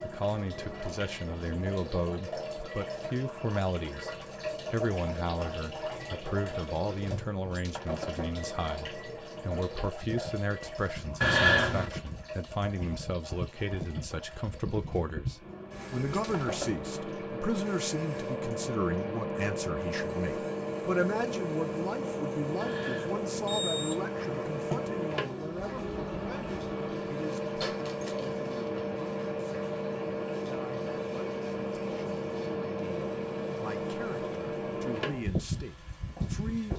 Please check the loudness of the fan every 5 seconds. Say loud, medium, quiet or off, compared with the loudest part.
quiet, quiet, medium, loud, loud, loud, loud, loud.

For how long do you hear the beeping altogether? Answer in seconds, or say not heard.
3 s.